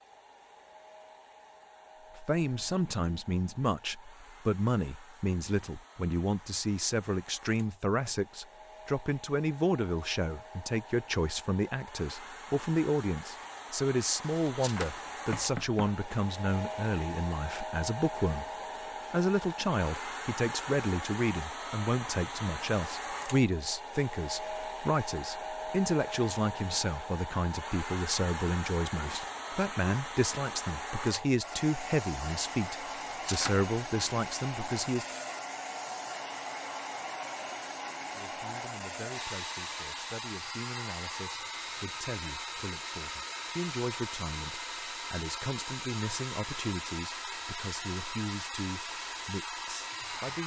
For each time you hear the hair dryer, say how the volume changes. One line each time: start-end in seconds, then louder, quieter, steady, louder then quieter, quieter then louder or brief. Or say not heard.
0.0-50.4 louder.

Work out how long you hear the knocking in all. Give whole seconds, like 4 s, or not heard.
2 s.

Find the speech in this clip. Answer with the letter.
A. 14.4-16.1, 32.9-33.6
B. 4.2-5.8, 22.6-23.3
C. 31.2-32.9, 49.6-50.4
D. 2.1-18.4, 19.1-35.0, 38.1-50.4
D.